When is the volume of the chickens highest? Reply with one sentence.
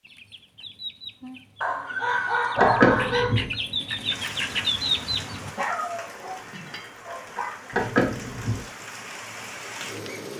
The volume of the chickens peaks at 5 seconds.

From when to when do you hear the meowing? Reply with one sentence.
The meowing can be heard from 2.5 to 3.5 s and from 7.7 to 8.6 s.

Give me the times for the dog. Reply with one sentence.
The dog can be heard from 1.6 to 3.4 s and from 5.5 to 7.5 s.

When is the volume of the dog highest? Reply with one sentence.
The volume of the dog peaks at 3 seconds.